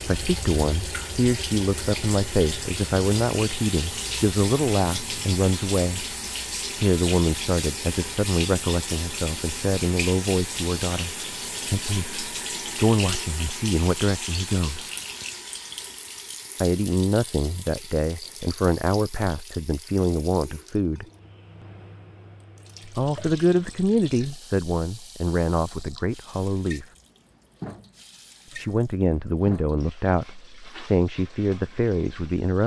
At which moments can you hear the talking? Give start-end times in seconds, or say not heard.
0.1-6.2, 6.8-14.9, 16.6-21.1, 22.9-26.9, 28.6-32.6.